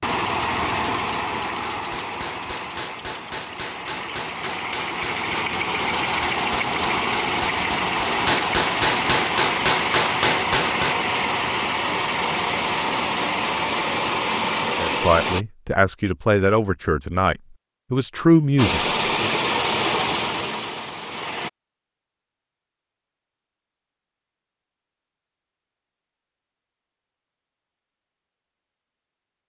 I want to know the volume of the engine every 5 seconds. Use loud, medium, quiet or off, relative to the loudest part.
medium, loud, loud, loud, medium, off.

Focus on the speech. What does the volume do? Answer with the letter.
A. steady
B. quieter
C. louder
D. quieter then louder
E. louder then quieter
C.